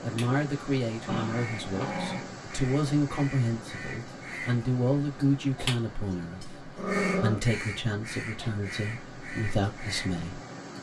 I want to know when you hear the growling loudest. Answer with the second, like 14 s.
7 s.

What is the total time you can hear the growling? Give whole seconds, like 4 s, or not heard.
2 s.